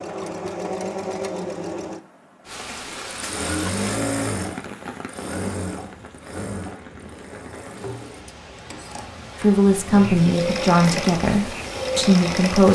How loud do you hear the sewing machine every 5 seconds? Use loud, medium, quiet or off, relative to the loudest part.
loud, medium, loud.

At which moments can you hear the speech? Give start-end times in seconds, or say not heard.
9.3-12.7.